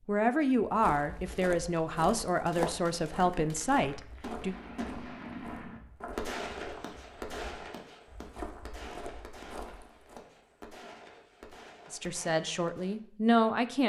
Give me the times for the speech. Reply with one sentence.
You can hear the speech from 0.1 to 4.5 s and from 11.9 to 13.8 s.